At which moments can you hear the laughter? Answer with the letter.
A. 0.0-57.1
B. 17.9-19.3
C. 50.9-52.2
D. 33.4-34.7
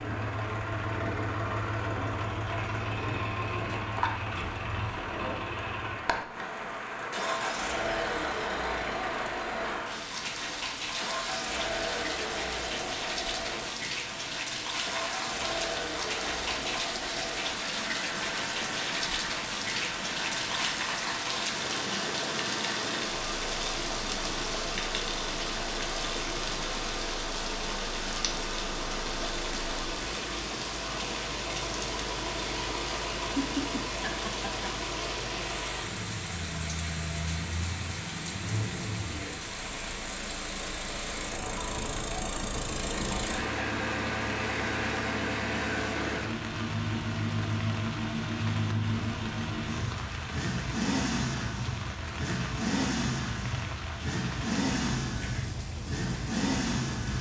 D.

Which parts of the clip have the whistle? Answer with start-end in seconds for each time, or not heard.
not heard.